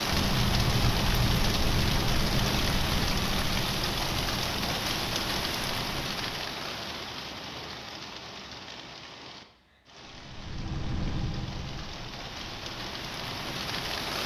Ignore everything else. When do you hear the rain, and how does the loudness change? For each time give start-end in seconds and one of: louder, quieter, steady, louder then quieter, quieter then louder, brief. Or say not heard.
0.0-14.2 quieter then louder.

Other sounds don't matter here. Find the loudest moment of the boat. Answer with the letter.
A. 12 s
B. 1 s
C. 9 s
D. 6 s
B.